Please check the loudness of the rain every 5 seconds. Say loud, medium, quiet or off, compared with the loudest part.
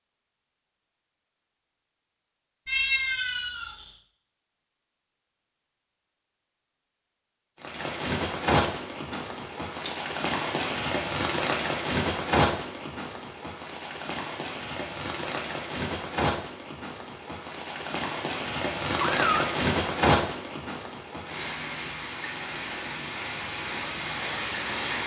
off, loud, loud, loud, loud.